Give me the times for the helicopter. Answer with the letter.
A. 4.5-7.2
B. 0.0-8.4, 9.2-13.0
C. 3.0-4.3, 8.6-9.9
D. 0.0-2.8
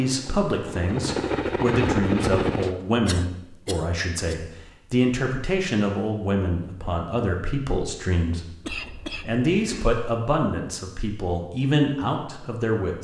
D.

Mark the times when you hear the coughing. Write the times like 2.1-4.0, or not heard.
3.0-4.3, 8.6-9.9.